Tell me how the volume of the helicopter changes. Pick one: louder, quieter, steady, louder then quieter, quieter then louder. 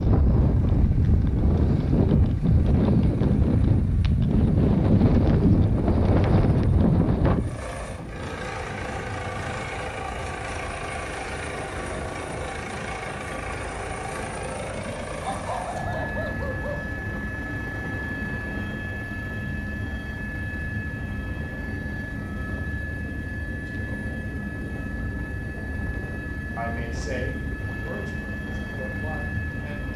louder.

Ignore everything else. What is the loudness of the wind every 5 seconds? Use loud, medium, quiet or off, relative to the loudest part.
loud, loud, quiet, quiet, quiet, quiet.